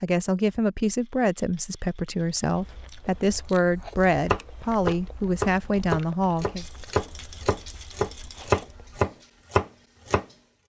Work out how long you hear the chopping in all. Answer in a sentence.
The chopping can be heard for 6 seconds in total.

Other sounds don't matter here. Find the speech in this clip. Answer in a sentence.
You can hear the speech from 0.0 to 6.7 s.